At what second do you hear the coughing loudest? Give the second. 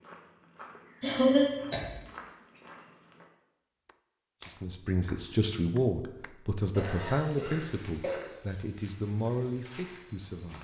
1 s.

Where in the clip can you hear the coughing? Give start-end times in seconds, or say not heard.
1.0-1.9, 6.8-8.2.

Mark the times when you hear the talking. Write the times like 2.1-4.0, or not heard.
4.5-10.5.